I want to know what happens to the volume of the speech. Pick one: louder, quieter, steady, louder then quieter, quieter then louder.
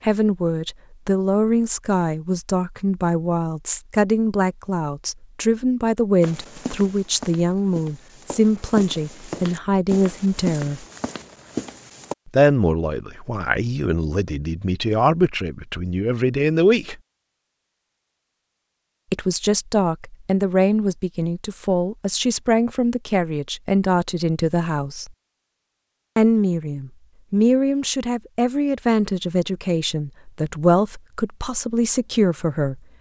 steady.